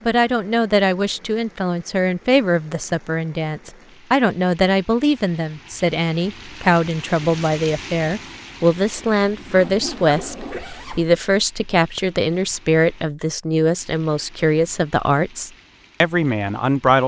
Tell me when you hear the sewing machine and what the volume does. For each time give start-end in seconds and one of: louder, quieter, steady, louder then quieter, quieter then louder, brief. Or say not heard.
not heard.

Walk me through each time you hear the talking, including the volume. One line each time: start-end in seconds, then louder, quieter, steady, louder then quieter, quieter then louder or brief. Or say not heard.
0.1-17.0 steady.